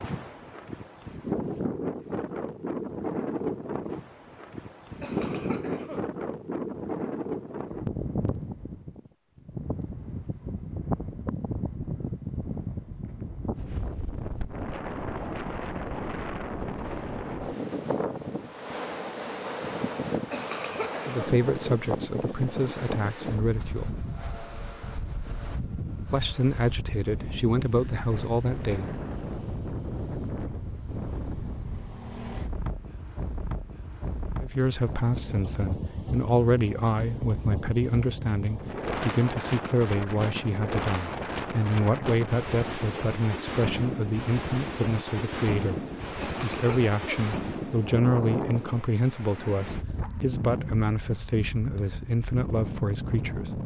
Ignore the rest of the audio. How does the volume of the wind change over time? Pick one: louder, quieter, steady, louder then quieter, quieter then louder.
steady.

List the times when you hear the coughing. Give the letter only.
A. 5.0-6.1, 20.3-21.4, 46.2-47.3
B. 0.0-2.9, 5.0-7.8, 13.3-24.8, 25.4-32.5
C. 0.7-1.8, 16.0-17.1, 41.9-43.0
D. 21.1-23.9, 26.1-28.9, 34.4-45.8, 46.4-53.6
A.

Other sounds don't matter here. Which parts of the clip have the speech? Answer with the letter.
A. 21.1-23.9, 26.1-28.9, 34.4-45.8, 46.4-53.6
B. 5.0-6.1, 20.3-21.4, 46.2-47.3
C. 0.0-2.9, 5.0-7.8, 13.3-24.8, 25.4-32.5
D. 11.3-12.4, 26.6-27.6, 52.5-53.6
A.